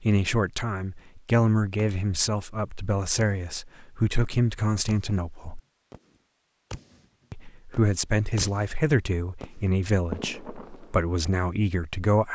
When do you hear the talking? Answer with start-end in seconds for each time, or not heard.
0.0-5.6, 7.3-12.3.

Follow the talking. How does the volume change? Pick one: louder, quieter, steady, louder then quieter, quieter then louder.
steady.